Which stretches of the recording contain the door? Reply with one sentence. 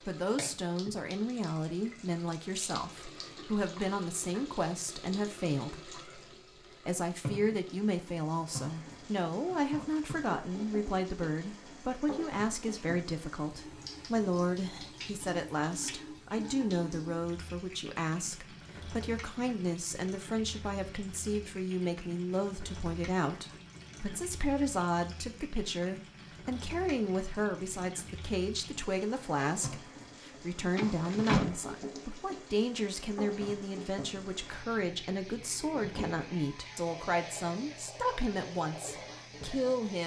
The door can be heard from 30.8 to 32.0 s.